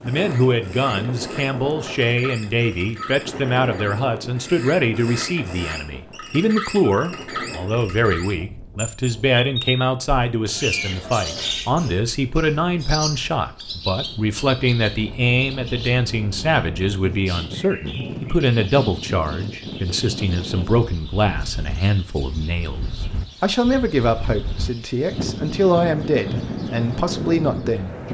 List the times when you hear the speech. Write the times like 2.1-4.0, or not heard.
0.0-27.9.